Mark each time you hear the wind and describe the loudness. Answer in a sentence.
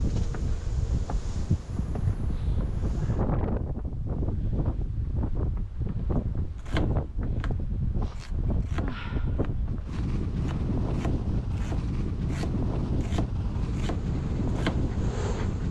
The wind can be heard from 0.0 to 15.6 s, at a steady volume.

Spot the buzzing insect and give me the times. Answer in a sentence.
The buzzing insect can be heard from 0.0 to 3.2 s and from 13.5 to 15.6 s.